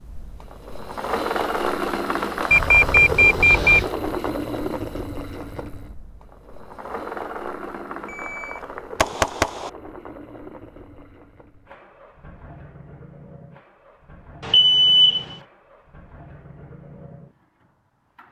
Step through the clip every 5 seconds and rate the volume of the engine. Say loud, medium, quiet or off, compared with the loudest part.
loud, medium, quiet, quiet.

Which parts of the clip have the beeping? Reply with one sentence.
You can hear the beeping from 2.5 to 3.9 s, from 8.1 to 9.7 s and from 14.4 to 15.3 s.